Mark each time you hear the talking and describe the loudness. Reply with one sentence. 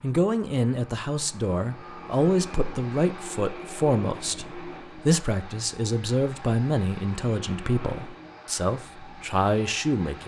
The talking can be heard from 0.0 to 10.2 s, at a steady volume.